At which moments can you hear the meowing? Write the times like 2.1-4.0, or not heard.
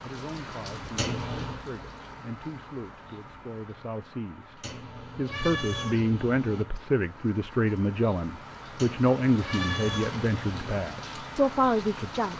0.9-1.6, 4.6-6.7, 8.8-10.8.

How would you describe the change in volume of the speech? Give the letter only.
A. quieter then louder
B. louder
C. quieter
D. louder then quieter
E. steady
B.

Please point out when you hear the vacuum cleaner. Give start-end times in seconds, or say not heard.
not heard.